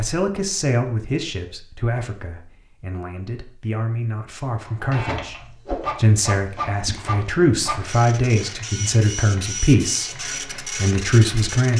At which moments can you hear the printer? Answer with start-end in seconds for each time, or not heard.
4.5-11.7.